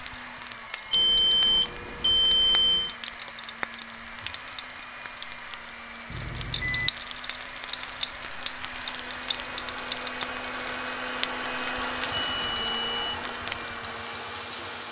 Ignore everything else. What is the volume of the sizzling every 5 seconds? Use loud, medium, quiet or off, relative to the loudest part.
medium, loud, loud.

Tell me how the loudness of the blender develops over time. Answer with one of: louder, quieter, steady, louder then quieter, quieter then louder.
louder.